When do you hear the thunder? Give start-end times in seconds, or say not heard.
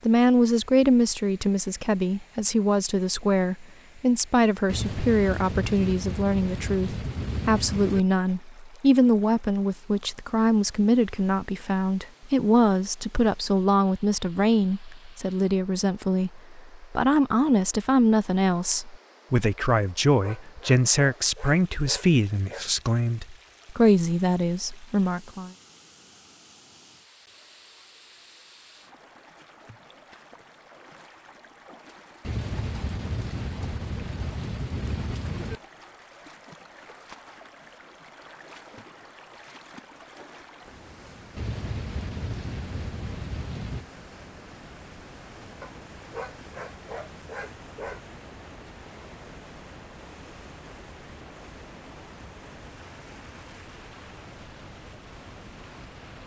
4.7-8.1, 32.2-35.6, 41.4-43.9.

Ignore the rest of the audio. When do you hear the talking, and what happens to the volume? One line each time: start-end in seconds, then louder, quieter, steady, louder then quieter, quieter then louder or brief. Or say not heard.
0.1-25.5 steady.